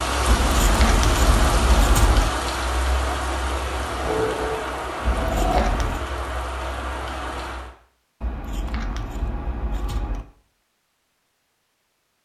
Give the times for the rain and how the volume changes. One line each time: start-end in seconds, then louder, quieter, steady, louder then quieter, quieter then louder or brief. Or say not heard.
0.0-7.8 quieter.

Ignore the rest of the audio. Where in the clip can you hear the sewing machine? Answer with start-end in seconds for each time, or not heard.
4.0-5.7.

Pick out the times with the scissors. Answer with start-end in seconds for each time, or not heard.
0.2-2.3, 5.0-6.0, 8.2-10.2.